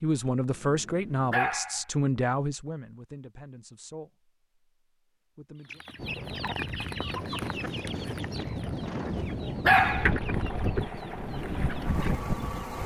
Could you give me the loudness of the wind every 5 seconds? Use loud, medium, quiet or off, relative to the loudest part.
off, loud, loud.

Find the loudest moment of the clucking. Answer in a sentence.
The volume of the clucking peaks at 10 seconds.